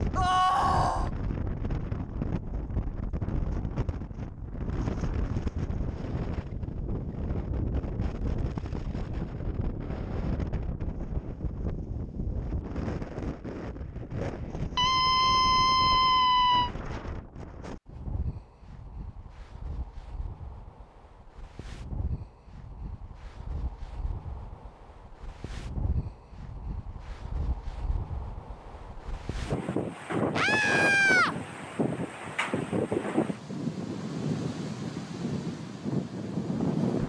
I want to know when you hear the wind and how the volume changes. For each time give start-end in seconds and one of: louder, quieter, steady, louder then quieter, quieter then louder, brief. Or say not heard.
0.0-37.0 quieter then louder.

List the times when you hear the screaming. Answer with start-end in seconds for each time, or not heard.
0.1-1.1, 14.8-16.7, 30.4-31.4.